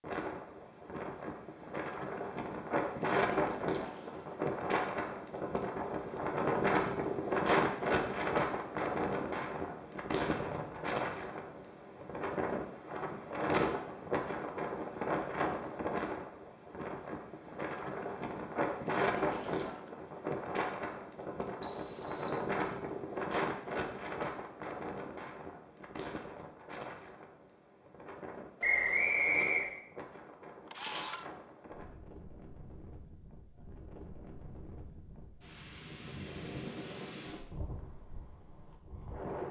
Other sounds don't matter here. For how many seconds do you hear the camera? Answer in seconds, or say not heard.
2 s.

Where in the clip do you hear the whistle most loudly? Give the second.
29 s.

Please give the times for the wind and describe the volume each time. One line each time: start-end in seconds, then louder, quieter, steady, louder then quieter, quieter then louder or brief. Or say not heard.
0.0-39.4 quieter.